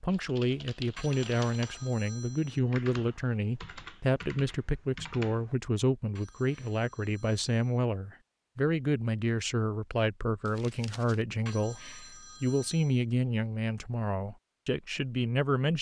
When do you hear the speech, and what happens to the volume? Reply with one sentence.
You can hear the speech from 0.0 to 15.7 s, at a steady volume.